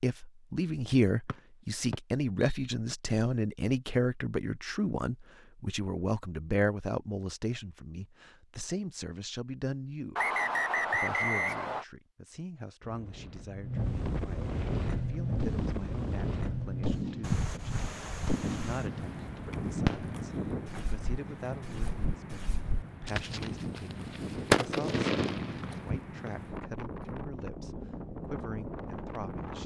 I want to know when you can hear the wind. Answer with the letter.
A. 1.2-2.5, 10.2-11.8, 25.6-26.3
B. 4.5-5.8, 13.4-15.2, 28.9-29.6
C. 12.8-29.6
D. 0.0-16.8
C.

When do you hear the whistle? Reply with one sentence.
You can hear the whistle from 1.2 to 2.5 s, from 10.2 to 11.8 s and from 25.6 to 26.3 s.